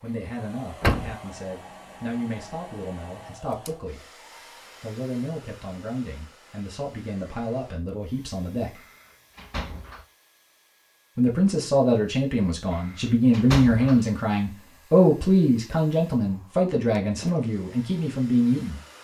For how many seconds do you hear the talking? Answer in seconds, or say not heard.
16 s.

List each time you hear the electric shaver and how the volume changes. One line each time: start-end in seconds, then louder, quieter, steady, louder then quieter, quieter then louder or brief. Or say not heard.
not heard.